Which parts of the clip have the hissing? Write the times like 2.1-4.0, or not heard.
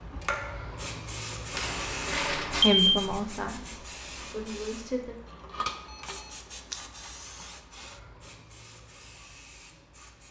0.0-10.2.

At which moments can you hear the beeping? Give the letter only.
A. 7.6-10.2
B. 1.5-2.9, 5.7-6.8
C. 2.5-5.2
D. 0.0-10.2
B.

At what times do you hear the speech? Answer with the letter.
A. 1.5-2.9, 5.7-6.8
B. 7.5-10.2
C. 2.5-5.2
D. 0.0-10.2
C.